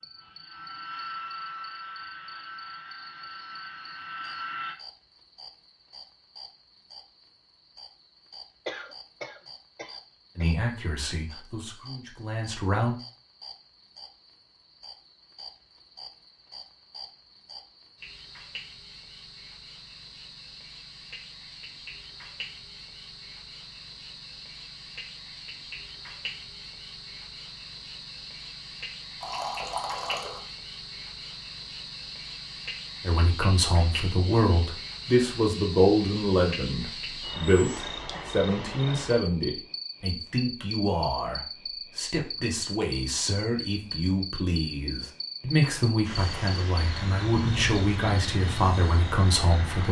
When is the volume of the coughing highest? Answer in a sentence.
The volume of the coughing peaks at 9 seconds.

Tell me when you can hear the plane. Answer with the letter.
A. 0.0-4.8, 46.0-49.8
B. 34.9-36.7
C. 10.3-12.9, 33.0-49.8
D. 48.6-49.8
A.